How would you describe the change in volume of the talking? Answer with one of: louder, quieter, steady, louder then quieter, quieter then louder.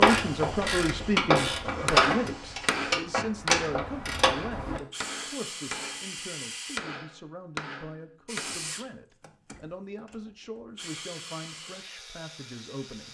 quieter.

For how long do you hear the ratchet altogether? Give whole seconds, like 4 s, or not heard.
5 s.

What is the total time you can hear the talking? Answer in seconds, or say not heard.
13 s.